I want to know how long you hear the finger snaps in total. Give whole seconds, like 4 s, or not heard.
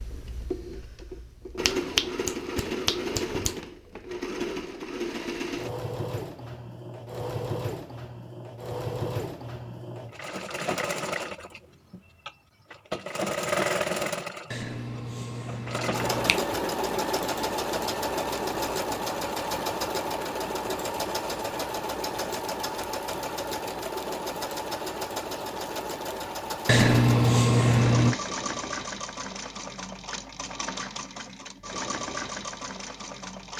5 s.